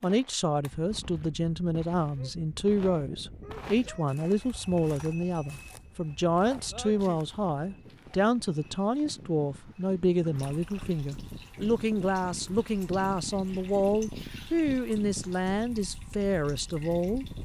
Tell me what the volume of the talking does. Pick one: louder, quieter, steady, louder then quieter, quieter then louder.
steady.